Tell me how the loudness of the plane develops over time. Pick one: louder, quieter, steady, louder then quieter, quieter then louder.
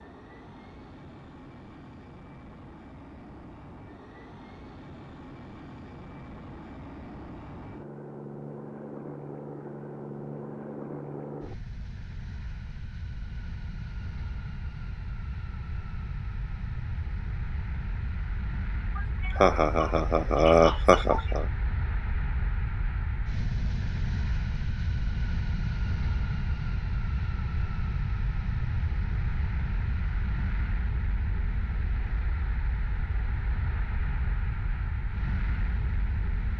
louder.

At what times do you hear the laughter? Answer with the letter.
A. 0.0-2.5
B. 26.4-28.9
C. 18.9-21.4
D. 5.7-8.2
C.